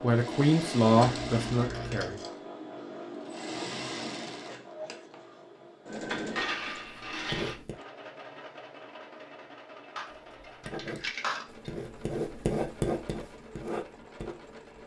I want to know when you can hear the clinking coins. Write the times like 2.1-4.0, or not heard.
0.9-2.1, 6.0-7.5, 9.9-11.7.